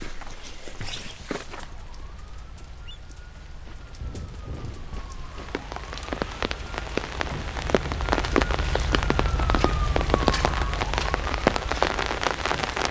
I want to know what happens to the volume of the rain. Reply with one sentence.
The loudness of the rain goes up.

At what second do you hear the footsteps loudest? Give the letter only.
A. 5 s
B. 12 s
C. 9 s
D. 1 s
D.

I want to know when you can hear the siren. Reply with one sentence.
You can hear the siren from 1.4 to 12.8 s.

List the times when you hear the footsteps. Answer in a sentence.
The footsteps can be heard from 0.0 to 1.8 s.